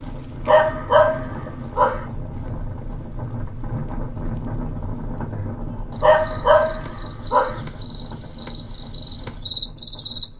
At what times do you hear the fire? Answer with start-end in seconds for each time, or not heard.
not heard.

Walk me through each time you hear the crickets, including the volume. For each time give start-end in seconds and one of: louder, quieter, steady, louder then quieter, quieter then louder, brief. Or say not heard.
0.0-10.2 quieter then louder.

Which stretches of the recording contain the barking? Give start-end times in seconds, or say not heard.
0.5-2.0, 6.0-7.6.